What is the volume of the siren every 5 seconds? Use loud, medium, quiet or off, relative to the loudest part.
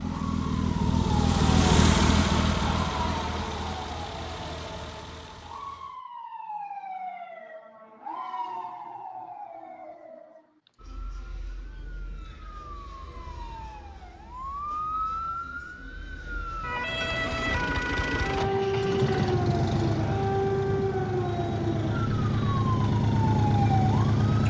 medium, medium, medium, loud, loud.